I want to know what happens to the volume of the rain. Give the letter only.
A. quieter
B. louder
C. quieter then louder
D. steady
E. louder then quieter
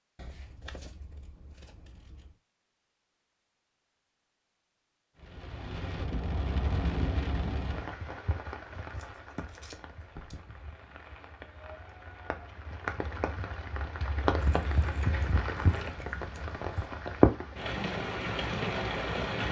C.